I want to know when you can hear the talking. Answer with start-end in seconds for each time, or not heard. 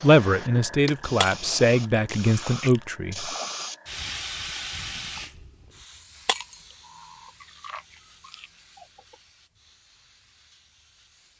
0.0-3.3.